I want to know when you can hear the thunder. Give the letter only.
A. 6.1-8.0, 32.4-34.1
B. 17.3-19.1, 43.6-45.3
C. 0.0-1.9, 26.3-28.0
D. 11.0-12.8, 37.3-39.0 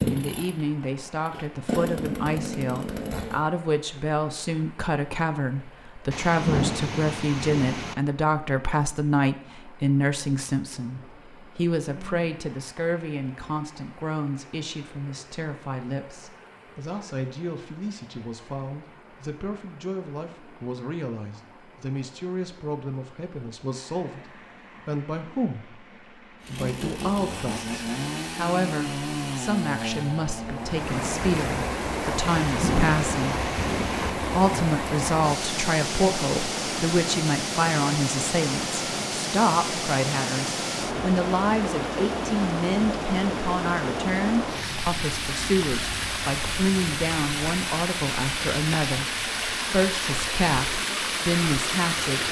A.